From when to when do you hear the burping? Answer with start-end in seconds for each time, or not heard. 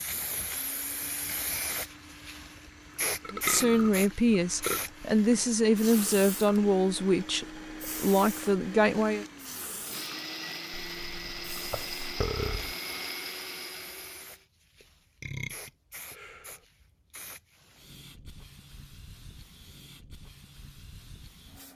3.2-4.8, 10.9-12.8, 14.8-16.6.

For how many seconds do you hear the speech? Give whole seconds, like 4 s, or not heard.
6 s.